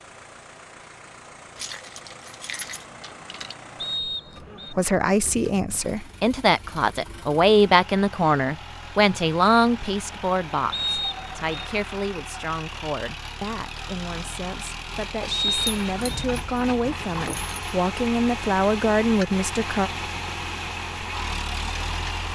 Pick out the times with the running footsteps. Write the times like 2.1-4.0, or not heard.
not heard.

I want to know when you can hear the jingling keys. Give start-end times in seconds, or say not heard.
1.6-3.5, 15.7-17.8.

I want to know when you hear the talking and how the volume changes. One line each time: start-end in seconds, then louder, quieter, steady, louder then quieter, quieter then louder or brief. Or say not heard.
4.7-19.9 quieter then louder.